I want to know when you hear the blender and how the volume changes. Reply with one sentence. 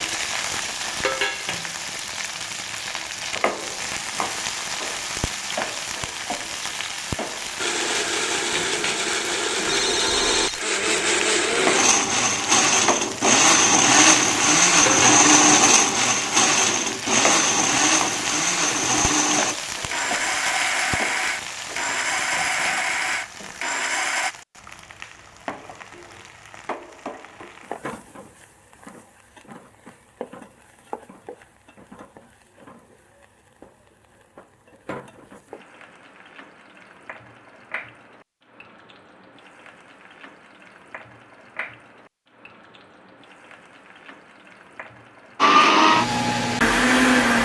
You can hear the blender from 7.5 to 24.4 s, getting louder then quieter; and briefly from 45.4 to 47.4 s.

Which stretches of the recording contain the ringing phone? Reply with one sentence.
You can hear the ringing phone from 9.7 to 10.6 s.